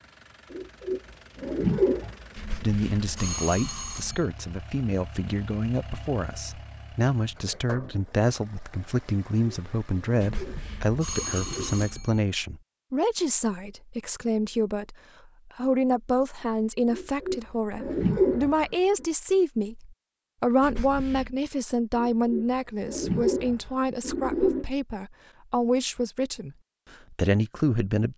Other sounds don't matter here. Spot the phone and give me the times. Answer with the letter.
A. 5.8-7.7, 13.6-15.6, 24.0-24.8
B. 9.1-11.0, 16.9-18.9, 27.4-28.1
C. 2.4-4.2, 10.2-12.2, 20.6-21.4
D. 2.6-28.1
C.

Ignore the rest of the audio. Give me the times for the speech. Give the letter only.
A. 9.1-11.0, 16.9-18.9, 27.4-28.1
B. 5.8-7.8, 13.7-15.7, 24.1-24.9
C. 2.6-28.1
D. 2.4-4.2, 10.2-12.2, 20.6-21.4
C.